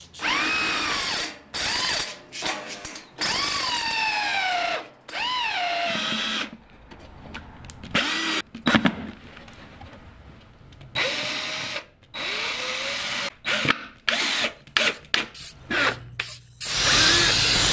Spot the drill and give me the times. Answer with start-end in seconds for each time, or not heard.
0.0-17.5.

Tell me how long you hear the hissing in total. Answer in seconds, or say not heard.
3 s.